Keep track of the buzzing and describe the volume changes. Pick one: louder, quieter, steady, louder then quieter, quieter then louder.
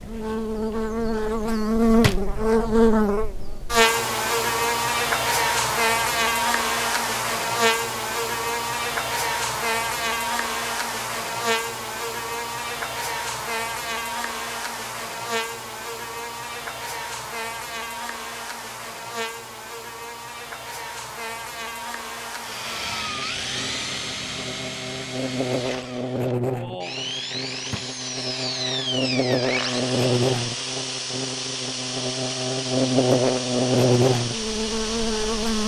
quieter then louder.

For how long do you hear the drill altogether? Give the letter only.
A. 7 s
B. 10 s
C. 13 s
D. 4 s
C.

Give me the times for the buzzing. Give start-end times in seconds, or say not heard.
0.0-35.6.